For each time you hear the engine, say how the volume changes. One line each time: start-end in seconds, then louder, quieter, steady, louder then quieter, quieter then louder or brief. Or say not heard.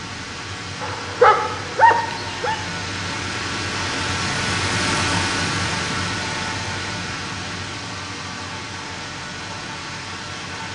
0.0-10.7 louder then quieter.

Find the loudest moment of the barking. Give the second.
1 s.